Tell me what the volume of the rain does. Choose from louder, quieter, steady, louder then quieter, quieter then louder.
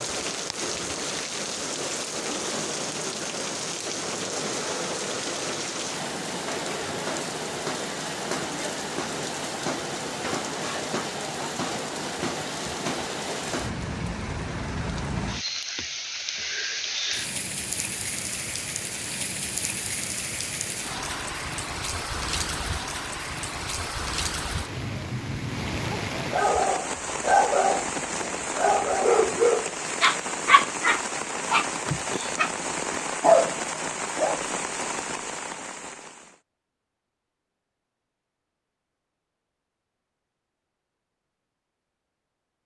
steady.